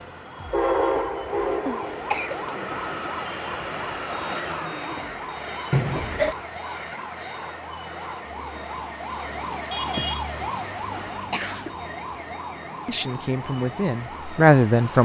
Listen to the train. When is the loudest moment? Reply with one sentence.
The volume of the train peaks at 1 second.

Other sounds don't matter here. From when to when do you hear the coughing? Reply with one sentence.
The coughing can be heard from 1.6 to 2.5 s, from 5.7 to 6.3 s and from 10.9 to 11.8 s.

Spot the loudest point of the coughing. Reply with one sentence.
The volume of the coughing peaks at 6 seconds.